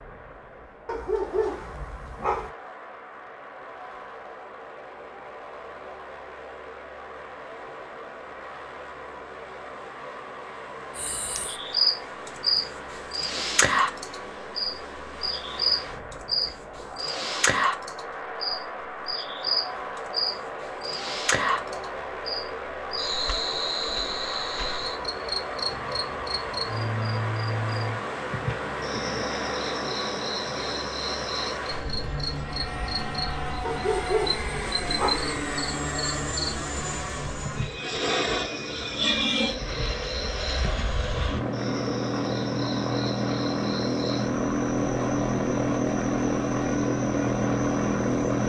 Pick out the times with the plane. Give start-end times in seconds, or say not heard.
0.0-48.4.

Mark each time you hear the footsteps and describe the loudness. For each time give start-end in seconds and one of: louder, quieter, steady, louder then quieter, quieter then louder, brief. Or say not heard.
not heard.